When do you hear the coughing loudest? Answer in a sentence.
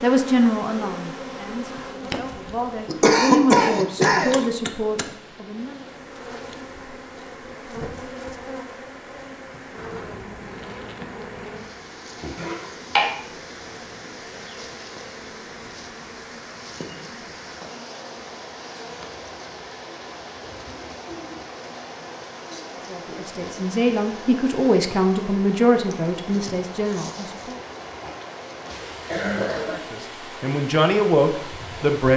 The loudest moment of the coughing is at 3 seconds.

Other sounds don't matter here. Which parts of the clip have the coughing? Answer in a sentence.
The coughing can be heard from 2.9 to 4.5 s, from 12.3 to 13.2 s and from 28.8 to 29.9 s.